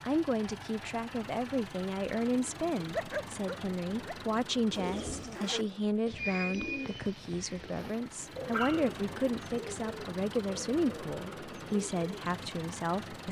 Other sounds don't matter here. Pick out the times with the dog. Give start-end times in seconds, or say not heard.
2.8-4.2, 7.8-8.9.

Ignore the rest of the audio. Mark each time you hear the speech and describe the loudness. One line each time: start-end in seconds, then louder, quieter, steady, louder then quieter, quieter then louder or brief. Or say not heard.
0.0-13.2 steady.